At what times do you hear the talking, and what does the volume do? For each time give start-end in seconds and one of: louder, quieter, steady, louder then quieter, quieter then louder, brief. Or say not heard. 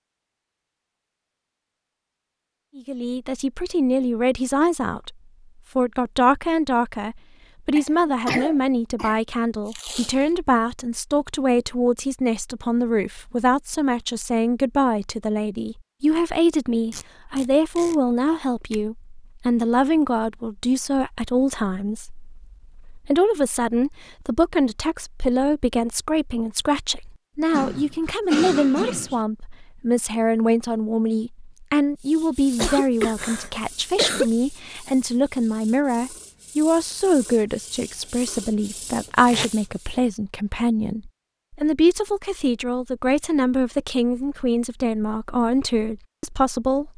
2.8-5.2 brief
5.8-46.9 steady.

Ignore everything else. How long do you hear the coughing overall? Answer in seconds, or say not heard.
5 s.